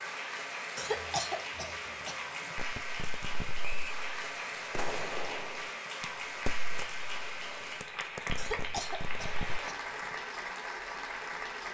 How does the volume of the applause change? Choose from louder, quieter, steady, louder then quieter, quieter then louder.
steady.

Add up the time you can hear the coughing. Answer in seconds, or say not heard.
4 s.